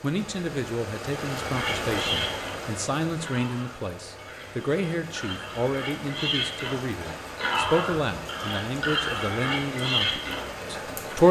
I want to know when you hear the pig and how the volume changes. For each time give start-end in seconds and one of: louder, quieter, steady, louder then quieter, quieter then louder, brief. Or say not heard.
1.4-11.2 quieter then louder.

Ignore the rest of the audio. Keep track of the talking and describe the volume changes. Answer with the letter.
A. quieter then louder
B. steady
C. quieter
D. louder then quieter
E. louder
B.